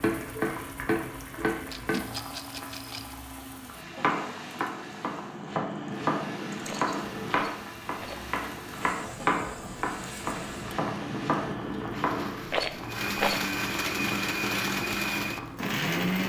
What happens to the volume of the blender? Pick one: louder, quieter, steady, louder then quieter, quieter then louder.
louder.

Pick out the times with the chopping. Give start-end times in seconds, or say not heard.
0.0-2.0, 4.0-12.5.